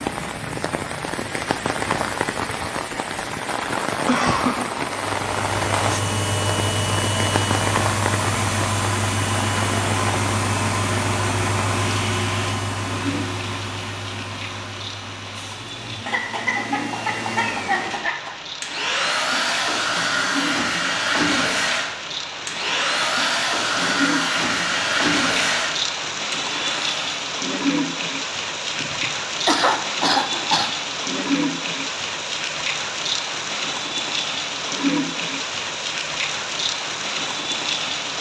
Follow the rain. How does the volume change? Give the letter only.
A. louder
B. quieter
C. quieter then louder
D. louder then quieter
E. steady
C.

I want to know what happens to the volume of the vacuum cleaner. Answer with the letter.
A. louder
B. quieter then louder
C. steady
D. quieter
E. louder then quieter
B.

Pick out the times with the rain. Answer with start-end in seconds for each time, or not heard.
0.0-38.1.